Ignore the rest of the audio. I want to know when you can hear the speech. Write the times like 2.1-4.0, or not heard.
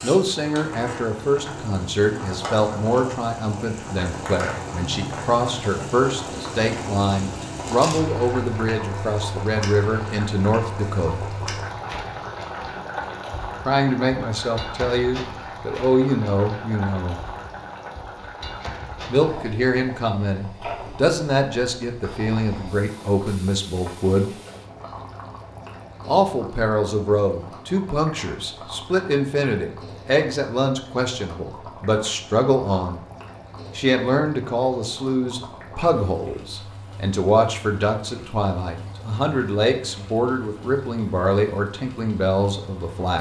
0.0-11.2, 13.7-17.2, 19.1-24.3, 26.1-33.0, 33.8-43.1.